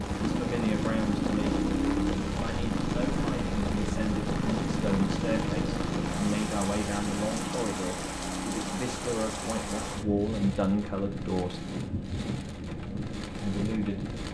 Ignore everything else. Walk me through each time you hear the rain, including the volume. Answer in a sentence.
The rain can be heard from 0.0 to 14.2 s, at a steady volume.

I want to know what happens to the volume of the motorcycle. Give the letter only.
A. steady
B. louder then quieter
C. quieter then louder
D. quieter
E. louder
D.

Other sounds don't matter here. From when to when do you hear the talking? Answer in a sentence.
You can hear the talking from 0.3 to 1.6 s, from 2.3 to 11.6 s and from 13.4 to 14.2 s.